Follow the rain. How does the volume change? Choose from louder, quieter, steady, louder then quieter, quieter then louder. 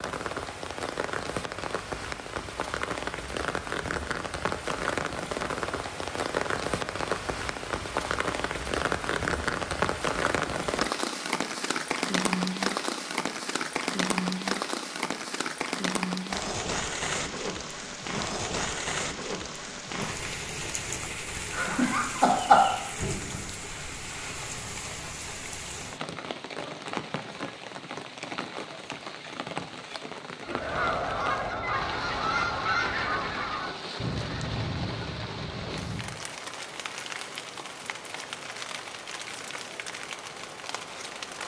quieter.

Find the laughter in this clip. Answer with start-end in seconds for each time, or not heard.
21.5-22.7.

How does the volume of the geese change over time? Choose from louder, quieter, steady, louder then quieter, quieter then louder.
quieter.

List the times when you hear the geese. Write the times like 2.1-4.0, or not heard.
30.4-36.2.